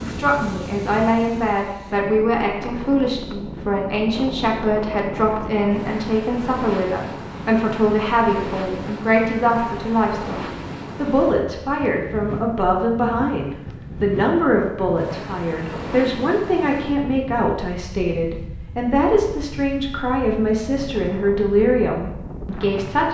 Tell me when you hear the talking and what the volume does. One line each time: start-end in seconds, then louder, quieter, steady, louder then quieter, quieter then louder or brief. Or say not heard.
0.0-10.3 steady
10.9-23.0 steady.